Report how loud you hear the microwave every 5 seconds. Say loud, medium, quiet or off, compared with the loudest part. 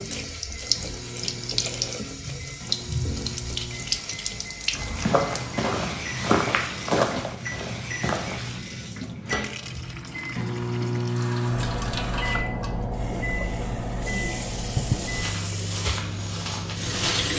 medium, medium, loud, medium.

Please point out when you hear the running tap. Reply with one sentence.
You can hear the running tap from 0.0 to 17.3 s.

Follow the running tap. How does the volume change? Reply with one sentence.
The volume of the running tap goes down, then up.